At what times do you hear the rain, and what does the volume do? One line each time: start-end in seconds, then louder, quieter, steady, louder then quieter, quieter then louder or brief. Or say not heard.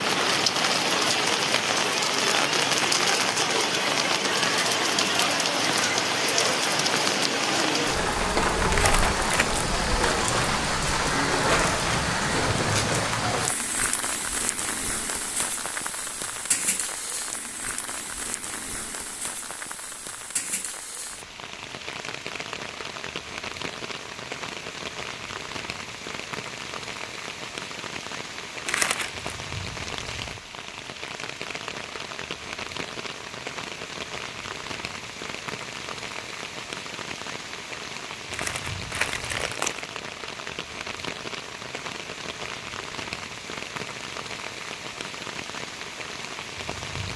0.0-47.1 quieter.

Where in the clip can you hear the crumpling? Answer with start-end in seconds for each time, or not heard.
8.7-9.5, 28.6-29.3, 38.3-40.0.